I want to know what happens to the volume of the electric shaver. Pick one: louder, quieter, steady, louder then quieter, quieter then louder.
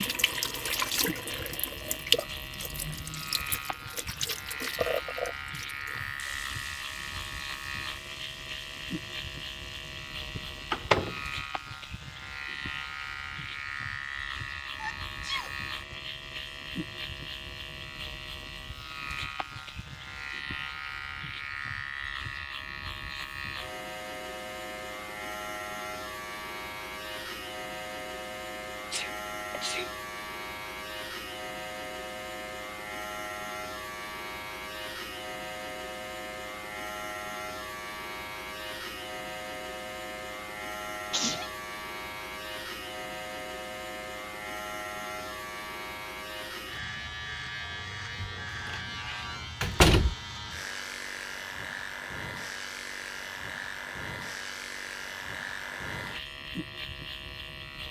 steady.